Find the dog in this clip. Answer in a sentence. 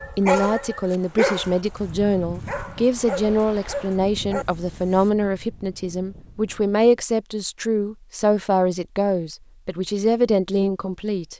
The dog can be heard from 0.0 to 5.2 s.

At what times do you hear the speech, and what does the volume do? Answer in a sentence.
You can hear the speech from 0.1 to 11.3 s, at a steady volume.